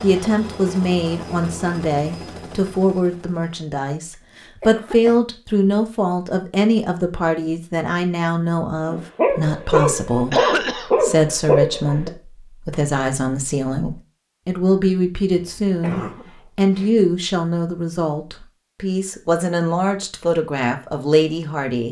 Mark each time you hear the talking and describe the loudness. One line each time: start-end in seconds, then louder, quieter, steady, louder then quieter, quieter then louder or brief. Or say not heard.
0.0-21.8 steady.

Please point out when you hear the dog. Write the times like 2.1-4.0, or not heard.
8.8-12.1.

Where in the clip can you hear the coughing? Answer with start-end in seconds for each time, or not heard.
4.6-5.2, 10.3-10.9, 15.3-16.9.